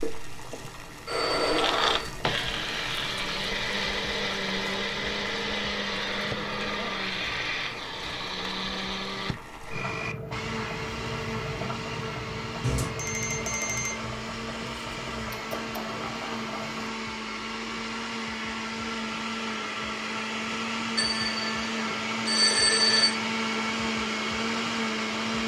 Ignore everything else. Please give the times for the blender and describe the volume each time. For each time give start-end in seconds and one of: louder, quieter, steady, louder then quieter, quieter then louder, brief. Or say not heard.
0.0-25.4 quieter then louder.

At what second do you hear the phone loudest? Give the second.
23 s.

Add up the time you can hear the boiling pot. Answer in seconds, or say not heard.
17 s.